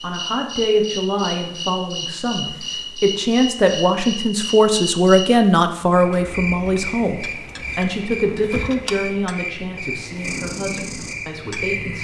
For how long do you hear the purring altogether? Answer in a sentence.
The purring can be heard for 2 seconds in total.